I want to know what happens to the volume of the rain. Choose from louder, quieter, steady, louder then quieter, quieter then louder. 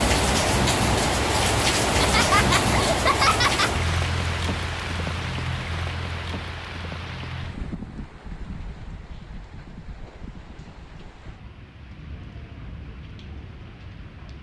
quieter.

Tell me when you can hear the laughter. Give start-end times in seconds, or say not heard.
1.8-3.7.